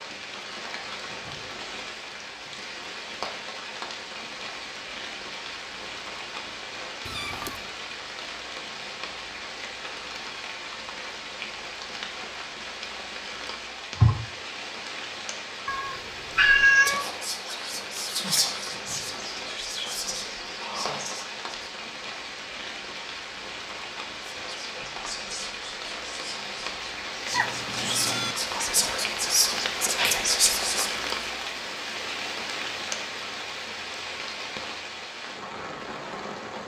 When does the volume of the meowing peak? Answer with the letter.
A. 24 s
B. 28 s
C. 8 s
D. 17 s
D.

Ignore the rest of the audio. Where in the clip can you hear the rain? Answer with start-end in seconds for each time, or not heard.
0.0-36.6.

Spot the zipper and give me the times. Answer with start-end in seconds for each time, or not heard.
not heard.